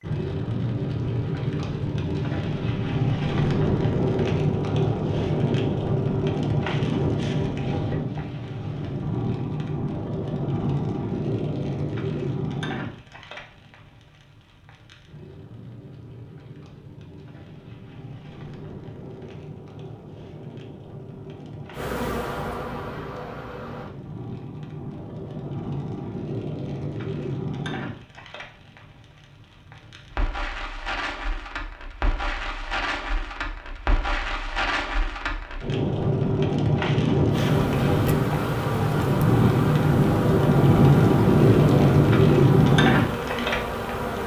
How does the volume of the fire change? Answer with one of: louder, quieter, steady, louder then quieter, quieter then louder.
quieter then louder.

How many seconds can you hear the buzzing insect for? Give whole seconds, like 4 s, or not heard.
9 s.